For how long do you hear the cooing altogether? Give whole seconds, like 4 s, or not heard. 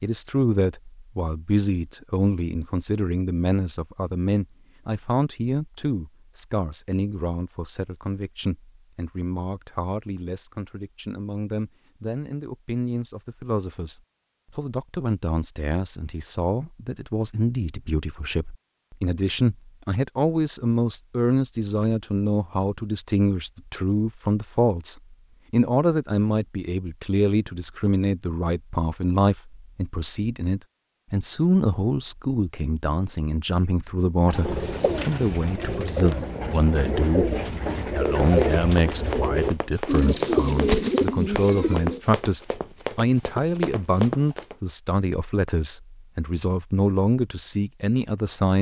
8 s.